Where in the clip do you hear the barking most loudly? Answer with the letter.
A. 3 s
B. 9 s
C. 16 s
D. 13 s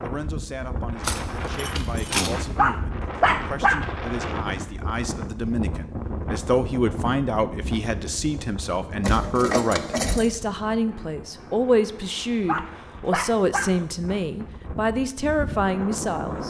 A.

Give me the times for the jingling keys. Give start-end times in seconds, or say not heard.
1.0-2.4, 9.0-10.3.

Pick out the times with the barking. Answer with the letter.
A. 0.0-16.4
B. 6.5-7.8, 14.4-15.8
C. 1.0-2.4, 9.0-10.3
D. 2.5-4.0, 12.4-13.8
D.